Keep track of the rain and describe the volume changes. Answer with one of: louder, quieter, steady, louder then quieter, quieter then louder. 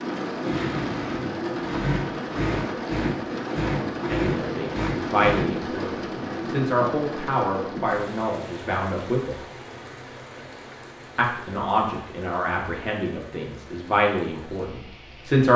quieter.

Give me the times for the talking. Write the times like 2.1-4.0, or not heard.
4.0-9.4, 11.2-15.5.